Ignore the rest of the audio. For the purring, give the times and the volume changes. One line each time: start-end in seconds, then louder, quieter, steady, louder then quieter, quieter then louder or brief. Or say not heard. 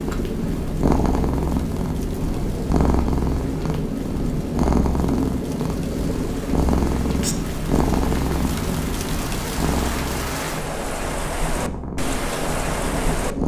0.0-13.4 quieter.